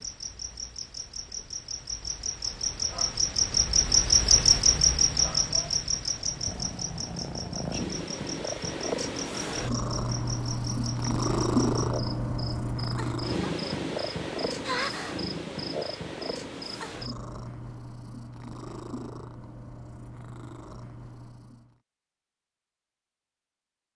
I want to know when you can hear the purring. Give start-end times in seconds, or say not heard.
6.1-21.8.